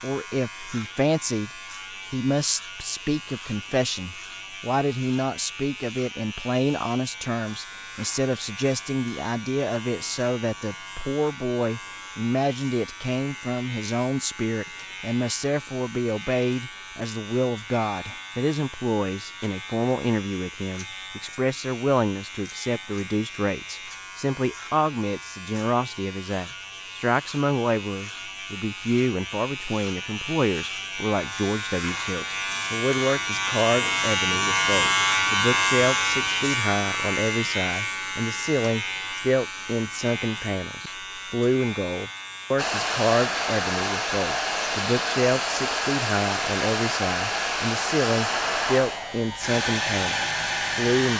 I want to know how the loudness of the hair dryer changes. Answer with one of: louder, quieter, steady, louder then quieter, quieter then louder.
steady.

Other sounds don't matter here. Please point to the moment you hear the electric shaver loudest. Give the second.
35 s.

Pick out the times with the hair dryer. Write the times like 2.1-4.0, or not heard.
42.5-51.1.